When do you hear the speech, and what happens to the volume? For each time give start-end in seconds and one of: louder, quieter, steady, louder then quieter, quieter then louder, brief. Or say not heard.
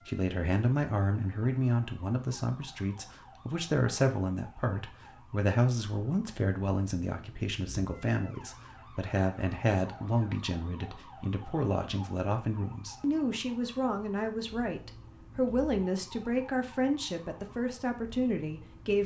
0.1-19.0 steady.